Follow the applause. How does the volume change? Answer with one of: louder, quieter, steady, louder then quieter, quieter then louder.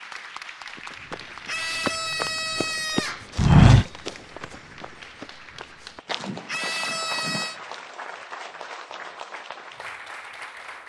quieter then louder.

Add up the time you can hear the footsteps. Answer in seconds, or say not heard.
7 s.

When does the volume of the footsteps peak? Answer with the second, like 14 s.
4 s.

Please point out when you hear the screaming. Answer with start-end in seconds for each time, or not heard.
1.4-3.2, 6.5-7.6.